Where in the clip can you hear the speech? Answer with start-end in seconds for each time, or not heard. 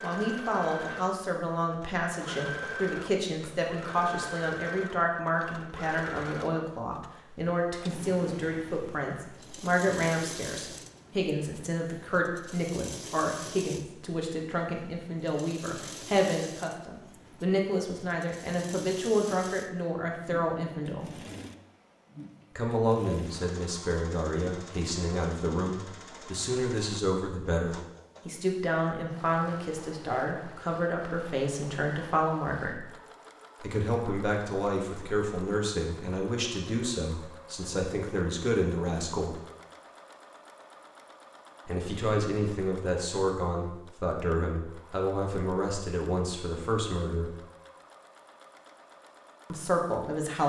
0.0-21.1, 22.6-32.9, 33.6-39.4, 41.6-47.4, 49.5-50.4.